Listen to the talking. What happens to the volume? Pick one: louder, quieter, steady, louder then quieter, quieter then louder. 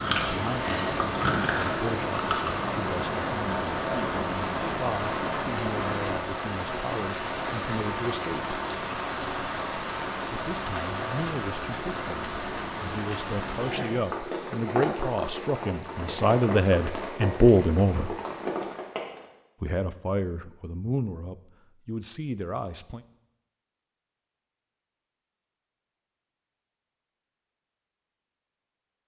louder then quieter.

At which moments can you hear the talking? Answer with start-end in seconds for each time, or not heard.
0.0-8.6, 10.3-18.1, 19.6-23.1.